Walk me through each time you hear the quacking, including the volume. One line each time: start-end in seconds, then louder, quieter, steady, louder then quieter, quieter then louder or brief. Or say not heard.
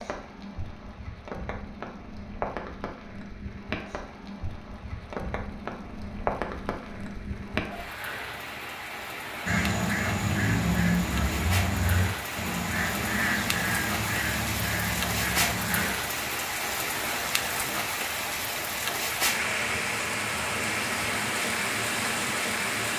9.4-15.9 quieter.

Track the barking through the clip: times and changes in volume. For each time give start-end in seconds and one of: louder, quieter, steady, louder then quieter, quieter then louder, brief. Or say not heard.
not heard.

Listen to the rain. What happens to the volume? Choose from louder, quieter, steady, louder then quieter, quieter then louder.
louder.